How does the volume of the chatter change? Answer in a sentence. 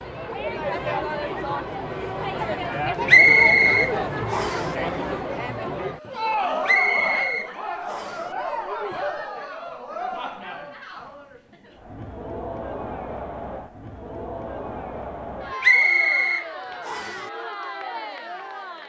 The volume of the chatter goes down.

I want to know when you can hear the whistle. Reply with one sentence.
The whistle can be heard from 3.0 to 4.7 s, from 6.7 to 8.2 s and from 15.6 to 17.2 s.